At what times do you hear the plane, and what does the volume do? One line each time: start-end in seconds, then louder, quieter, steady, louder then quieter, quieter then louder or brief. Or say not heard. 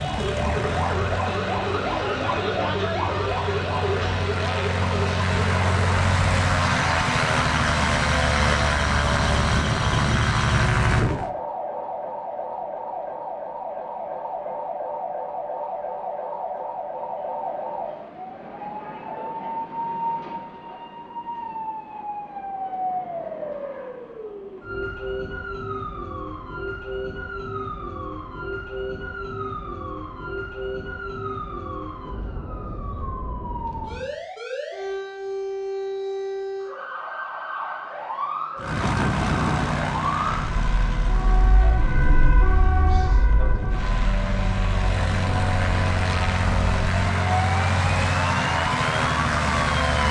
0.0-11.3 louder
38.5-50.0 quieter then louder.